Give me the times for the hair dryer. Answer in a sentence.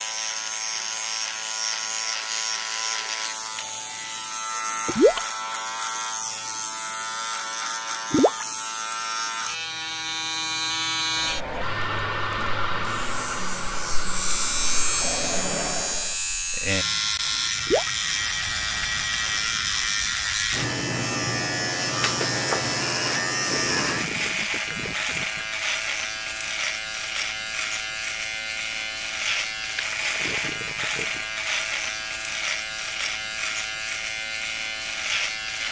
The hair dryer can be heard from 11.1 to 16.1 s.